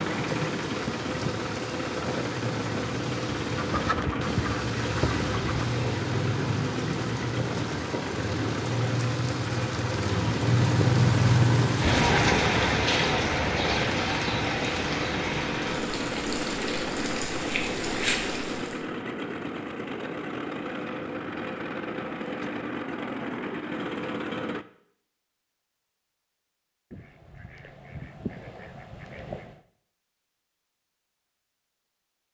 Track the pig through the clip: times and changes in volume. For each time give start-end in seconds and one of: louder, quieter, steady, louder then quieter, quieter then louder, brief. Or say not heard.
not heard.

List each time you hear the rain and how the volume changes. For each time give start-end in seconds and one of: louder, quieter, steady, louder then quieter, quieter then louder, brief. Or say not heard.
0.0-18.9 louder then quieter.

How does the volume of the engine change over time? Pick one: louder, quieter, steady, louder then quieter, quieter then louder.
steady.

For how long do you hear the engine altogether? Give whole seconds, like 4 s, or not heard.
25 s.